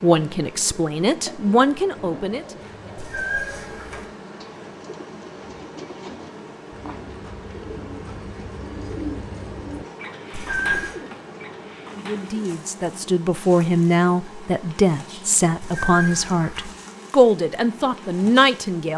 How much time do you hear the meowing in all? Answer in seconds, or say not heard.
3 s.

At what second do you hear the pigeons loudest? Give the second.
9 s.